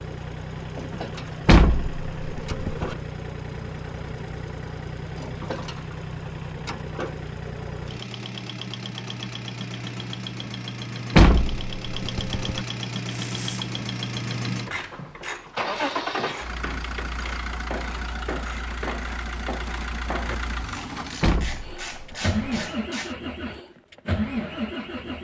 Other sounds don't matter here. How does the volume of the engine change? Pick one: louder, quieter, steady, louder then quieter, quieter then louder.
steady.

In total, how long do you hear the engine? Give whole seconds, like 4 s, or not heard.
25 s.